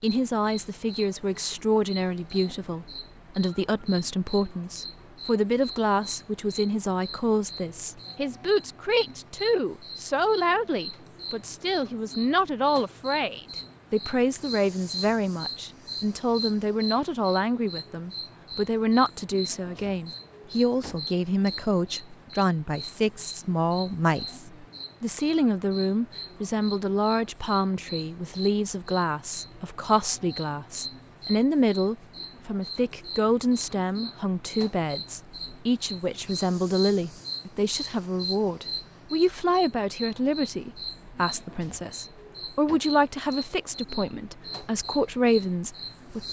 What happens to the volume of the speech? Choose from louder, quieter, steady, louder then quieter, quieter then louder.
steady.